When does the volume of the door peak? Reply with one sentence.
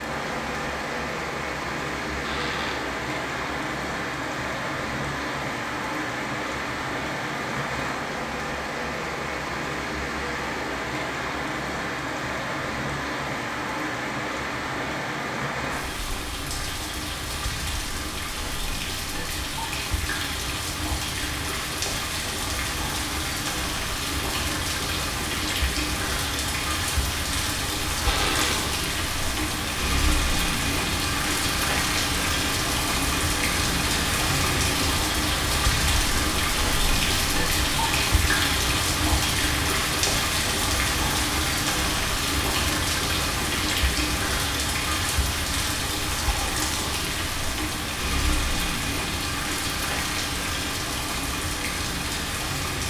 The loudest moment of the door is at 28 seconds.